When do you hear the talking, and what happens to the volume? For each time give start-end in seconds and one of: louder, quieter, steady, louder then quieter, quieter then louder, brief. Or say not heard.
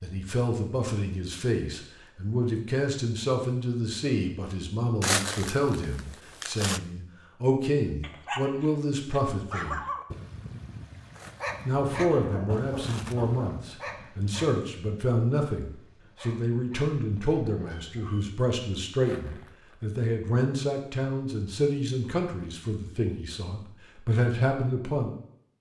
0.0-9.8 steady
11.7-25.1 steady.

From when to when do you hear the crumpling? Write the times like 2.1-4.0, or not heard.
5.0-6.8, 11.1-11.6, 12.7-13.2, 19.0-19.9.